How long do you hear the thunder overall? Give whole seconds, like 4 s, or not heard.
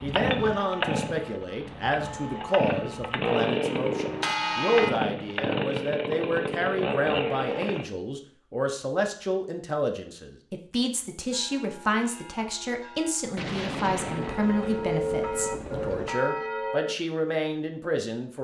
3 s.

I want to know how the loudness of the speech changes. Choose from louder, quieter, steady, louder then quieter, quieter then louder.
steady.